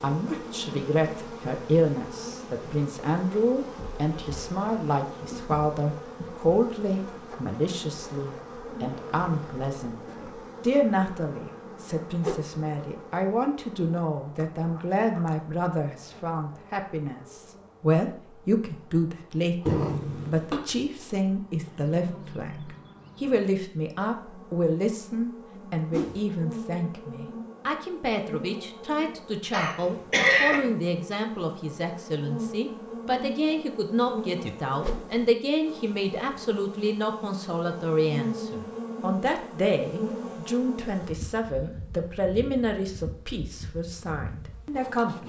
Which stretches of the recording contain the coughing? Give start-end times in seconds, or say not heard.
19.6-20.6, 29.5-30.6.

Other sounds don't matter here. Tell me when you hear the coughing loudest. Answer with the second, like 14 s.
30 s.